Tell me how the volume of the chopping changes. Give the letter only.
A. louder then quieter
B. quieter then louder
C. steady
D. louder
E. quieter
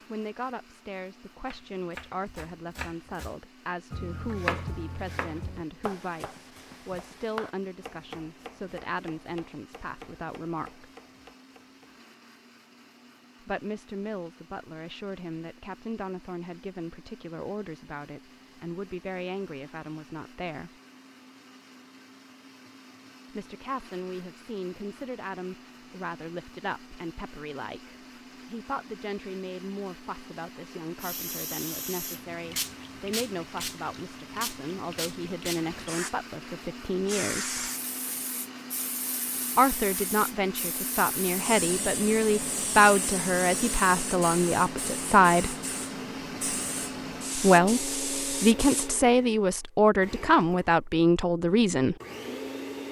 A.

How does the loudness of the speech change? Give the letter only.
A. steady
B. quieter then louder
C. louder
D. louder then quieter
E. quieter
C.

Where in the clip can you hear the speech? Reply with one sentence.
You can hear the speech from 0.1 to 10.8 s, from 13.4 to 20.7 s, from 23.3 to 37.6 s, from 39.5 to 45.5 s and from 47.4 to 52.0 s.